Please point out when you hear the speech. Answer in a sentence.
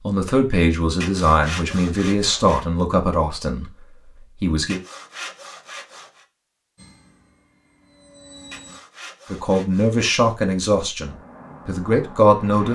The speech can be heard from 0.0 to 4.8 s and from 9.3 to 12.7 s.